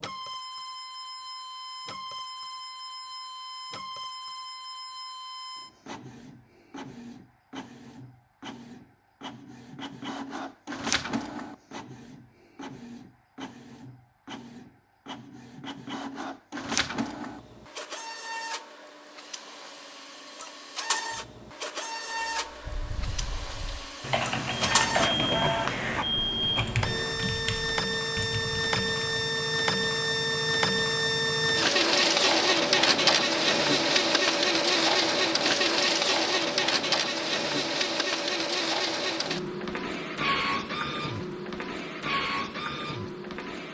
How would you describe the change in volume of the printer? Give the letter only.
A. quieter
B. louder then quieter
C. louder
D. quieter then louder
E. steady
C.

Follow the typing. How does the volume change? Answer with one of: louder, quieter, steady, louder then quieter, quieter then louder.
louder then quieter.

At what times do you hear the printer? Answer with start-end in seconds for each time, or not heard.
0.0-43.6.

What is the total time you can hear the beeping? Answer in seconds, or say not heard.
3 s.